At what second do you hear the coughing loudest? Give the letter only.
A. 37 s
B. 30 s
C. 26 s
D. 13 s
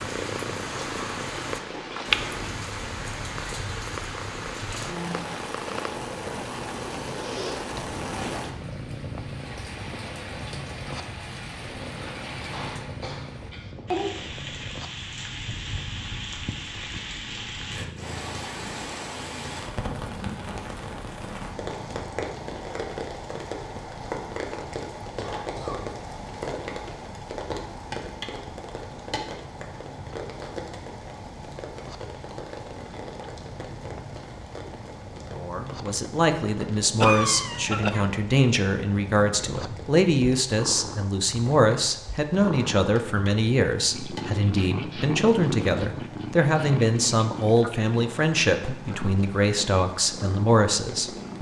A.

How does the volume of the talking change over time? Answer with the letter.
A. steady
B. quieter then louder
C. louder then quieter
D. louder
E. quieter
A.